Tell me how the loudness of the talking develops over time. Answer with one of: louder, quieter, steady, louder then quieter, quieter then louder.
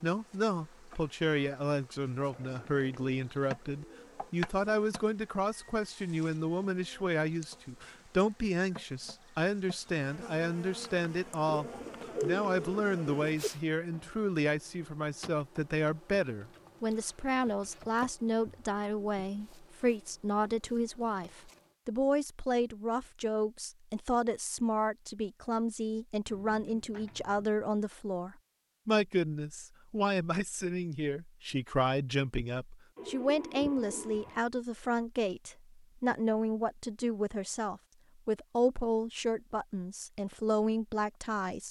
steady.